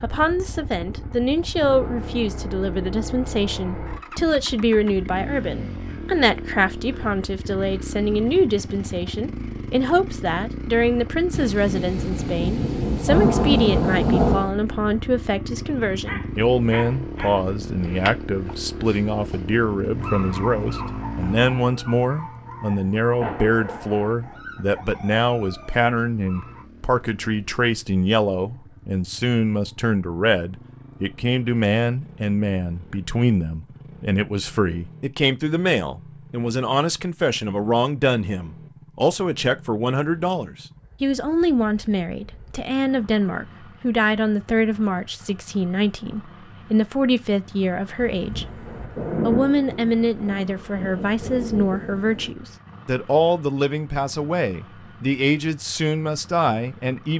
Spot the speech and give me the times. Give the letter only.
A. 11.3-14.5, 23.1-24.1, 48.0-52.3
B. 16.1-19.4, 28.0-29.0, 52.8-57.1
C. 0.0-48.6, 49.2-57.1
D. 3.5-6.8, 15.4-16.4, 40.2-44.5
C.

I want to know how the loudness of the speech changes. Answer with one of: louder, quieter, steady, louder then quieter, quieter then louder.
steady.